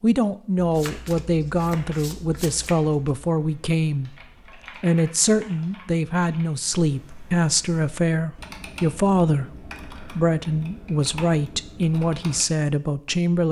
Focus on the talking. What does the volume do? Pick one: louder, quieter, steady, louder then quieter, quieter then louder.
steady.